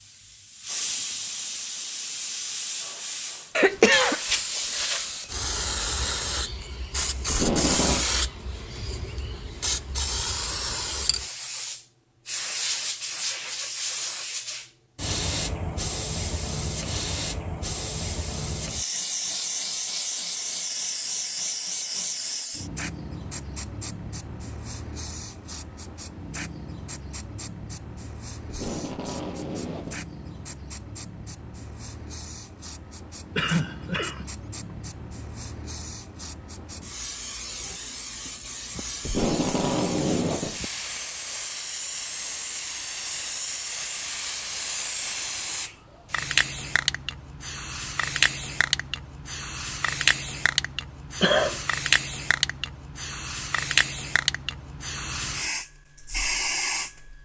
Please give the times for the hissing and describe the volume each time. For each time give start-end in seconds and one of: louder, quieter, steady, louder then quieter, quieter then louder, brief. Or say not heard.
0.0-57.2 quieter then louder.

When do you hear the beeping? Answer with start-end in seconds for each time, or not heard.
not heard.